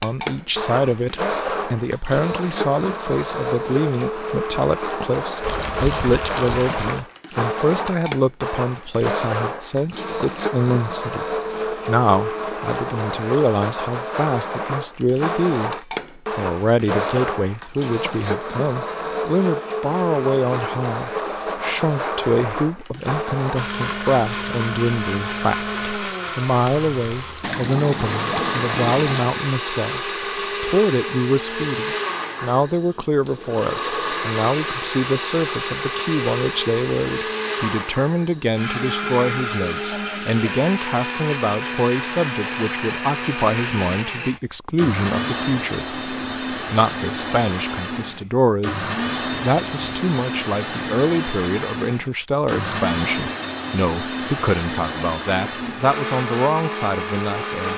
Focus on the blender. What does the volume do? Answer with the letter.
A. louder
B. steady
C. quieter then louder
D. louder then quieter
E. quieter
B.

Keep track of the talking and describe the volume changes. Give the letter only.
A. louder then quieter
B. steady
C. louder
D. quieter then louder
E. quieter
B.